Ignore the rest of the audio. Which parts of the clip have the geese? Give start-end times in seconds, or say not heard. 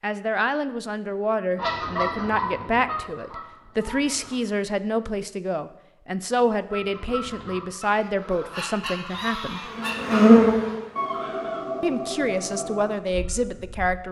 1.6-4.3, 6.7-14.0.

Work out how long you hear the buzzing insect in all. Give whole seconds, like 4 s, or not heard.
2 s.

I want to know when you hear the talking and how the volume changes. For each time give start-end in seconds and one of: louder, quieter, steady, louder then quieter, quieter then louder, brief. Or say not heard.
0.0-9.7 steady
11.8-14.0 brief.